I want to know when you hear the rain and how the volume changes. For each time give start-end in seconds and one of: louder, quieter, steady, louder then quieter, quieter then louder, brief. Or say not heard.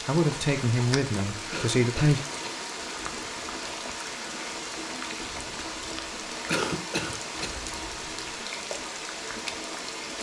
0.0-10.1 steady.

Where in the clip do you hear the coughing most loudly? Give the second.
7 s.